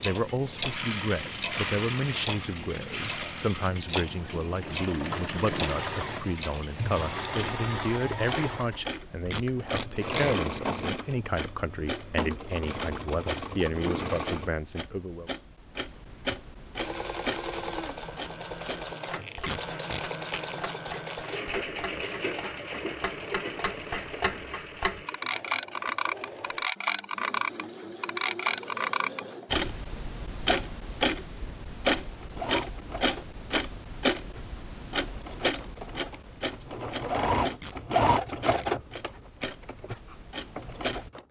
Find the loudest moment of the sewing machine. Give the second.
38 s.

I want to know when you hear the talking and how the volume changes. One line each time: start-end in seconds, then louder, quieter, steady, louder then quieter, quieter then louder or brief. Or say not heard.
0.0-15.3 steady.